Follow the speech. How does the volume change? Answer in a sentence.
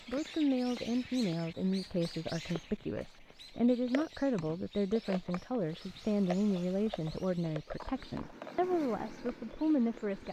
The loudness of the speech stays about the same.